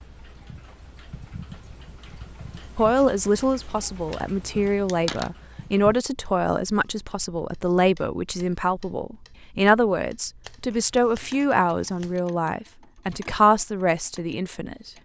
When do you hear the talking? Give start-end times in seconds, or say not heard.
2.8-14.9.